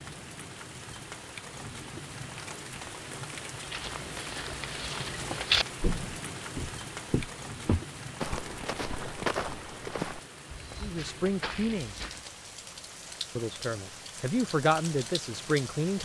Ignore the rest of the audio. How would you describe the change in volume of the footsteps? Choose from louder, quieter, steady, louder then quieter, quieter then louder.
quieter.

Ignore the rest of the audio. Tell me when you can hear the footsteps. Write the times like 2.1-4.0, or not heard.
3.6-12.3.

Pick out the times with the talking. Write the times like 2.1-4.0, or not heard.
10.8-12.1, 13.3-16.0.